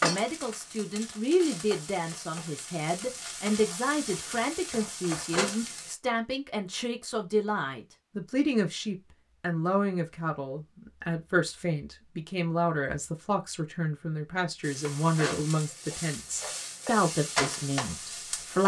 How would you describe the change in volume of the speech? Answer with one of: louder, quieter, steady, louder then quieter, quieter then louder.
steady.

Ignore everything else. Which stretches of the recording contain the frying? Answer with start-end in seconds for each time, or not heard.
0.0-6.0, 14.6-18.6.